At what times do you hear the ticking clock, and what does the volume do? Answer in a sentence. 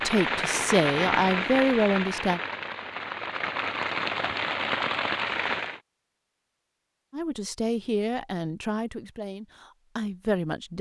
You can't hear the ticking clock here.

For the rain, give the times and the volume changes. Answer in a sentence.
The rain can be heard from 0.0 to 5.8 s, getting quieter then louder.